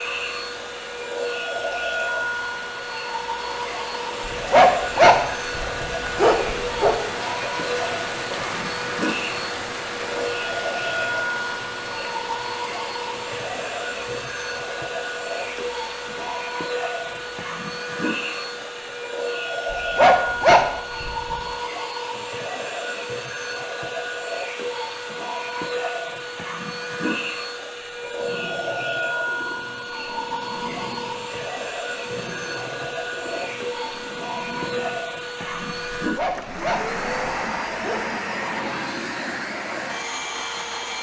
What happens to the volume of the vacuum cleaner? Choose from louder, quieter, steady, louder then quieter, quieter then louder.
steady.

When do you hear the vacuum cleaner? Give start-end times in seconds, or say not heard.
0.0-40.9.